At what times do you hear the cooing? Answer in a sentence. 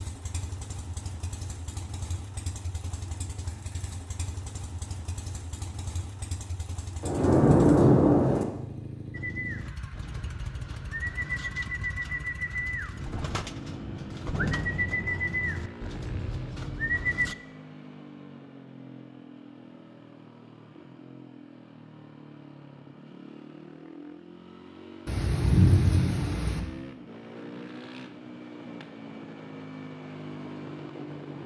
You can hear the cooing from 9.1 to 17.4 s.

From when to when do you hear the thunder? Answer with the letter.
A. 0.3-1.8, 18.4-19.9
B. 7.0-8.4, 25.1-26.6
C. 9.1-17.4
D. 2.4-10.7
B.